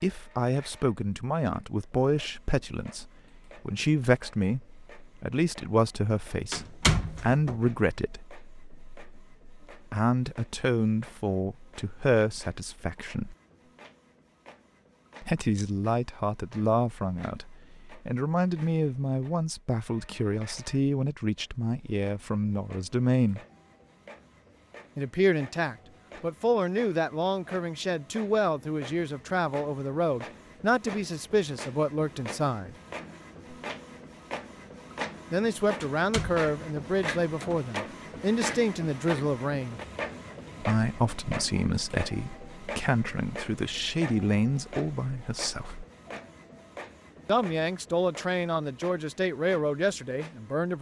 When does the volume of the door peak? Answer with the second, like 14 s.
7 s.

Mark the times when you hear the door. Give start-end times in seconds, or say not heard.
6.5-7.6, 35.8-37.6.